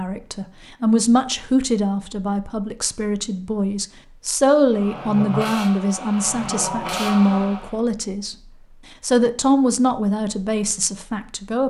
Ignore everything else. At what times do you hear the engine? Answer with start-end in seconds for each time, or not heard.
4.7-7.8.